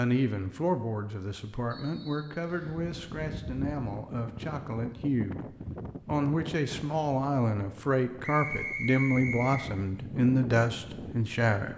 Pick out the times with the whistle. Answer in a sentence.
The whistle can be heard from 1.7 to 2.8 s and from 8.2 to 9.7 s.